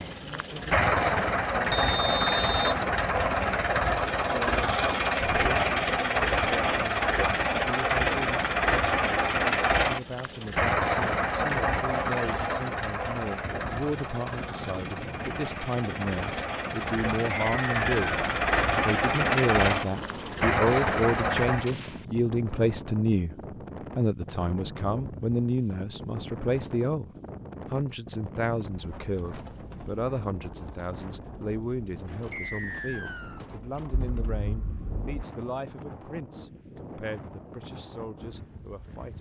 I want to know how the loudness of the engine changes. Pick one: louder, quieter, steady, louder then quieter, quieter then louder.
quieter then louder.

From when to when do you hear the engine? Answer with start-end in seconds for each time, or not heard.
0.0-21.7.